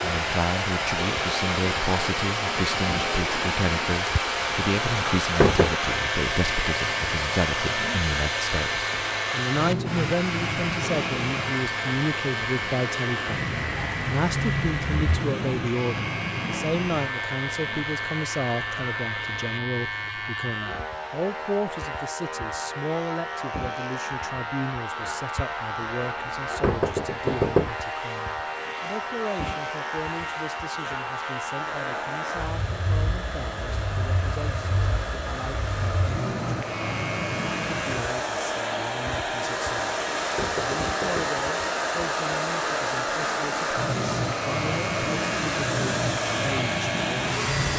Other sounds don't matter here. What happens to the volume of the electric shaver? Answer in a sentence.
The volume of the electric shaver stays about the same.